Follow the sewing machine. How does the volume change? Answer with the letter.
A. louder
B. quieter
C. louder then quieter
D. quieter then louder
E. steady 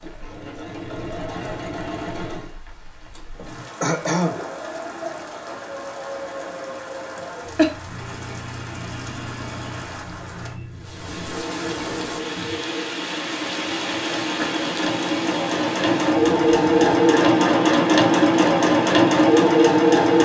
A.